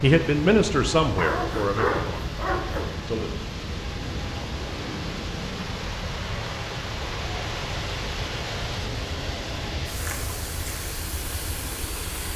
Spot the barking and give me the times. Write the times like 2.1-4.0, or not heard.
1.1-3.0.